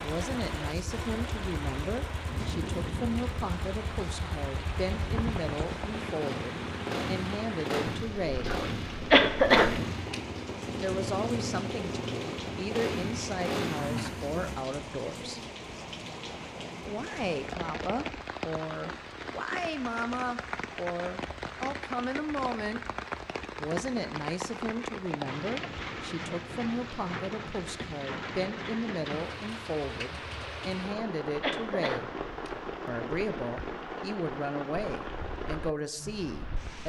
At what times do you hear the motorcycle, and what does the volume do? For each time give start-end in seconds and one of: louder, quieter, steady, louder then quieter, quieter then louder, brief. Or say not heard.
0.0-14.6 louder.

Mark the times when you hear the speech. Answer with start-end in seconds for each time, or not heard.
0.0-8.5, 10.8-15.4, 16.9-22.8, 23.6-32.1, 32.9-36.8.